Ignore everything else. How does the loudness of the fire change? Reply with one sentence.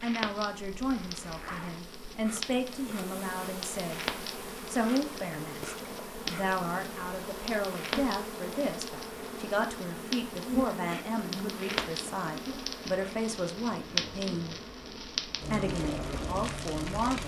The loudness of the fire goes up.